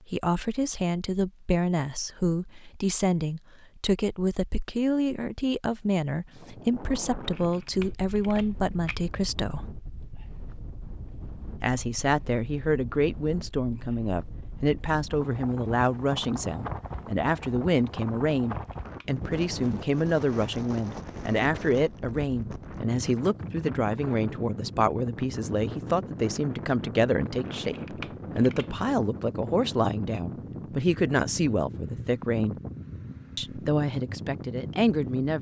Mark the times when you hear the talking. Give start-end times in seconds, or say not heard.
0.1-9.7, 11.6-32.5, 33.4-35.3.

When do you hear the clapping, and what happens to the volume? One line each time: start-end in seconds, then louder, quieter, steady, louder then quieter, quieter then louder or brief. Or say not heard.
not heard.